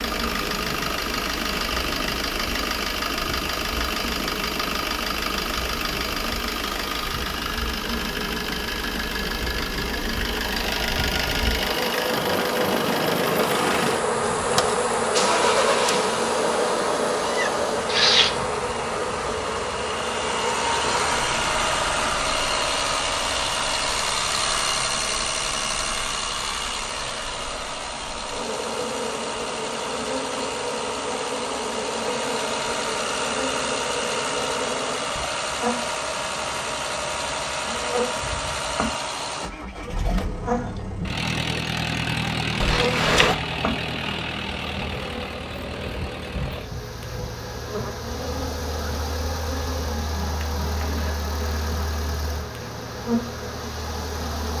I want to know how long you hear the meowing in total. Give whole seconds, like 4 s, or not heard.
2 s.